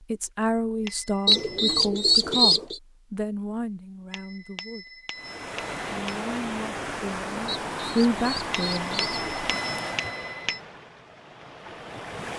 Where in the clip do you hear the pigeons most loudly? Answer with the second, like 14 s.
2 s.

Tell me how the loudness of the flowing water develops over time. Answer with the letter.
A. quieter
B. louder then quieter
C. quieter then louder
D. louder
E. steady
A.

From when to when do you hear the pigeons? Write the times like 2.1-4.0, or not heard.
1.2-2.8, 7.5-9.3.